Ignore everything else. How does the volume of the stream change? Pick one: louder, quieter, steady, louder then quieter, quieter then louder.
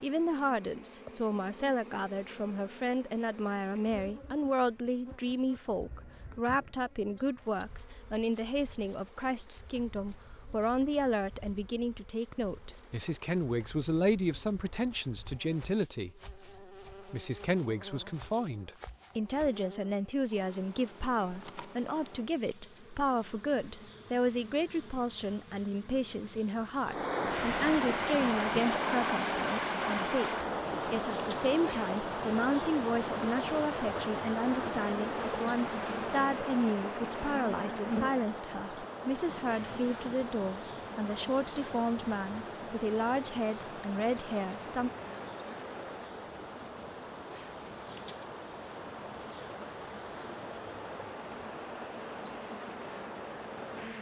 quieter.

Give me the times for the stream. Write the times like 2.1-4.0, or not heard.
26.9-53.9.